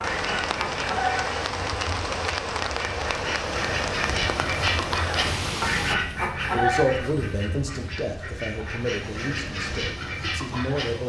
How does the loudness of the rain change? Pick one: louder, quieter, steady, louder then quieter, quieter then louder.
steady.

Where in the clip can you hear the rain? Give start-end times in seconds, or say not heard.
0.0-6.0.